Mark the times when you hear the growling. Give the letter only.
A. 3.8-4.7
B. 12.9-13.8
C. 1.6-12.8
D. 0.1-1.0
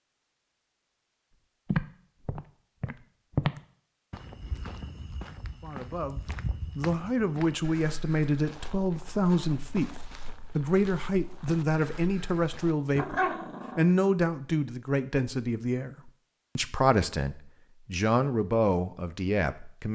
B.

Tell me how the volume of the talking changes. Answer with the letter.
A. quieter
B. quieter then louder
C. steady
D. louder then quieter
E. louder
C.